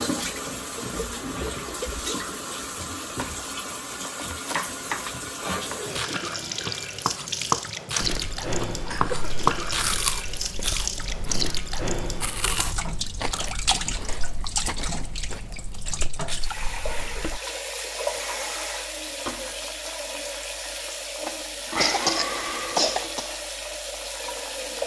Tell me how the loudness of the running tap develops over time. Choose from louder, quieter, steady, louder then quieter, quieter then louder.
steady.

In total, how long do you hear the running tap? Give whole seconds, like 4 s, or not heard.
25 s.